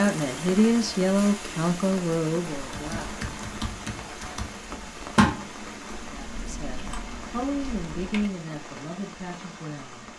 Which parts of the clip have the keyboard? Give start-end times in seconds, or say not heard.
2.6-8.3.